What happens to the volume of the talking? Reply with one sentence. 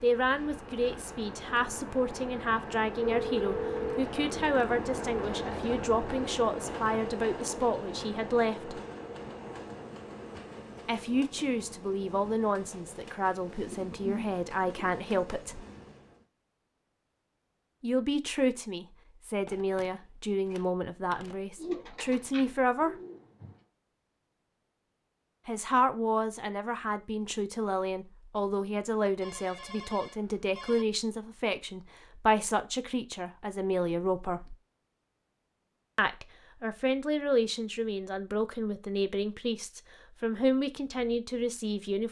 The volume of the talking stays about the same.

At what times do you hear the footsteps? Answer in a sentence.
The footsteps can't be heard in this clip.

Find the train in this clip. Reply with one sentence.
The train can be heard from 0.0 to 16.2 s.